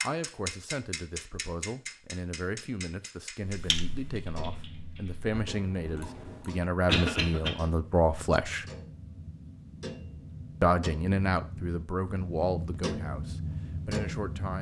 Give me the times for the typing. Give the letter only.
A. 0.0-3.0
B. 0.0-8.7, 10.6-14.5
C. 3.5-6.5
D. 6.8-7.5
C.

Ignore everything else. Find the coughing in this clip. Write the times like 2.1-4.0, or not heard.
6.8-7.5.